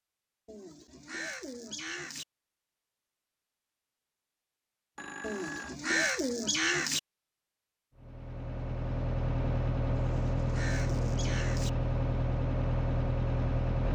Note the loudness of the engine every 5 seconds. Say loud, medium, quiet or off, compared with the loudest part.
off, loud, loud.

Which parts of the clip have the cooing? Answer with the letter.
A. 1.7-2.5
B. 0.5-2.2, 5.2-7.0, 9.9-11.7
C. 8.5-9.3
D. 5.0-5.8
B.